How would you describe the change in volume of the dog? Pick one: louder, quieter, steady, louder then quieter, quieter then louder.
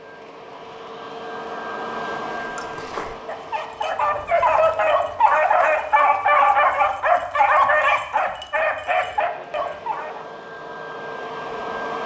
louder then quieter.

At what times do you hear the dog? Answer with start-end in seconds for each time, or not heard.
2.2-10.3.